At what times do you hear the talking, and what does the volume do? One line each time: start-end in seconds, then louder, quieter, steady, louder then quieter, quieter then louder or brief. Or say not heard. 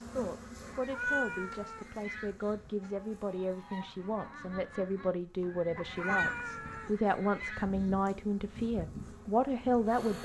0.0-10.1 louder.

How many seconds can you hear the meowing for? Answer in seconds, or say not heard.
2 s.